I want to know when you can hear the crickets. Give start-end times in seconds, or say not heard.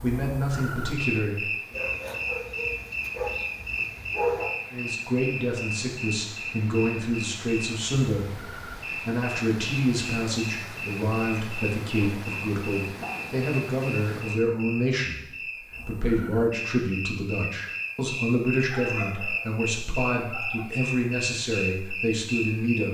0.0-22.8.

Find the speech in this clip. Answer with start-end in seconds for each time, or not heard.
0.0-1.5, 4.7-15.2, 15.8-22.8.